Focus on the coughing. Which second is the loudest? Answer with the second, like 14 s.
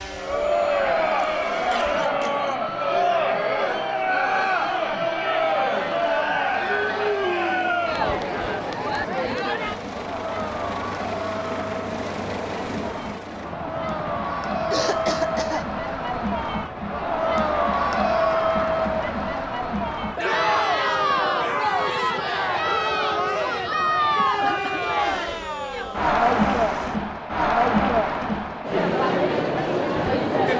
15 s.